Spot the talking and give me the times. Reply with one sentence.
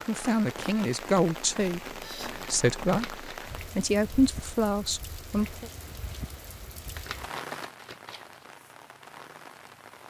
You can hear the talking from 0.1 to 5.7 s.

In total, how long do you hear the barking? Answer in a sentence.
The barking can't be heard in this clip.